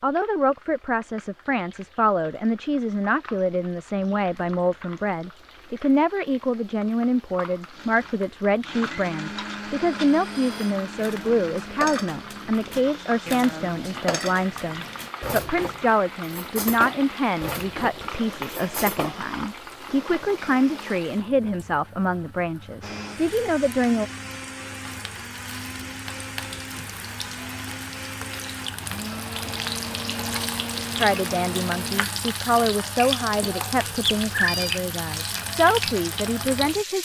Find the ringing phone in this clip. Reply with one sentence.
The ringing phone can be heard from 34.0 to 34.8 s.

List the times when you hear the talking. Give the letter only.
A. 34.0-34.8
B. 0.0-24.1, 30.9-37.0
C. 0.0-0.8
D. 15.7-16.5
B.